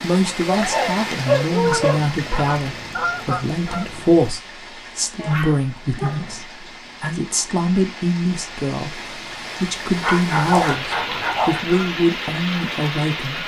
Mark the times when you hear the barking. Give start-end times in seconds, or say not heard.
0.5-2.0, 5.2-6.5, 10.0-11.6.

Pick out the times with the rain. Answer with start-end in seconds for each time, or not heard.
0.0-13.4.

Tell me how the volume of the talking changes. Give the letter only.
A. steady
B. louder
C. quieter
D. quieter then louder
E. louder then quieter
A.